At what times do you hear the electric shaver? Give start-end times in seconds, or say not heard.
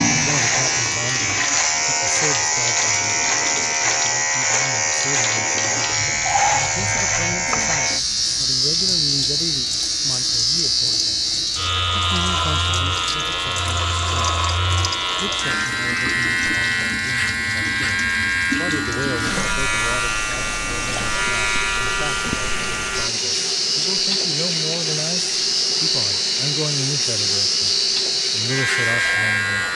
0.0-29.6.